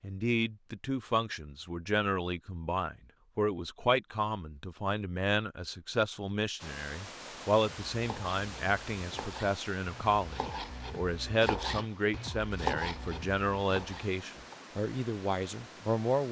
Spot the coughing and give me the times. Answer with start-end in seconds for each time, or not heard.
not heard.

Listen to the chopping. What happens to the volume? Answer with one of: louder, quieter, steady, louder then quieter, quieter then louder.
louder then quieter.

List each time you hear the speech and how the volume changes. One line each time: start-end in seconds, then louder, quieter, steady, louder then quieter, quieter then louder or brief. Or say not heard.
0.0-16.2 steady.